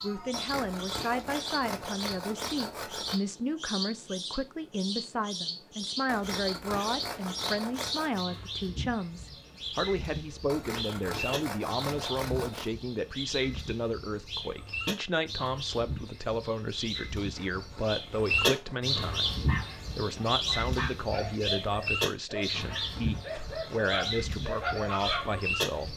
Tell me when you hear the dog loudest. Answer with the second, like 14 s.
25 s.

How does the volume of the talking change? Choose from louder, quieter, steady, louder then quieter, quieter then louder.
steady.